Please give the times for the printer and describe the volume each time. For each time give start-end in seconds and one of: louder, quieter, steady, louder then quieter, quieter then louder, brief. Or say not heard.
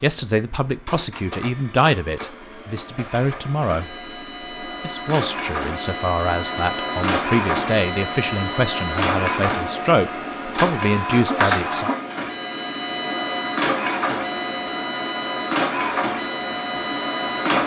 0.0-17.6 louder.